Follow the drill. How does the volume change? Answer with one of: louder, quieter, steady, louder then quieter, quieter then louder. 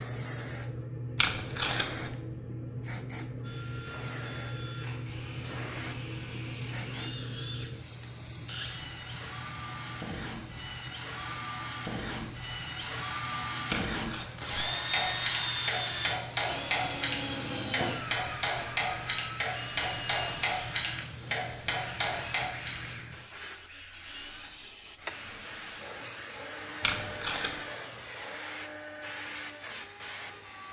louder then quieter.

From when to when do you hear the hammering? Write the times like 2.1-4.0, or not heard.
14.6-22.8.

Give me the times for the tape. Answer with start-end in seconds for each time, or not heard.
1.1-2.1, 13.7-14.3, 26.8-27.6.